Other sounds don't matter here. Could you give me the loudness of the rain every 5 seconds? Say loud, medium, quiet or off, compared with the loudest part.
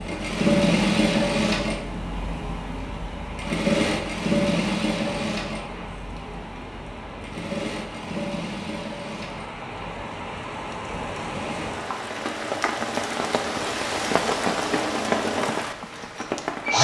medium, medium, loud, loud.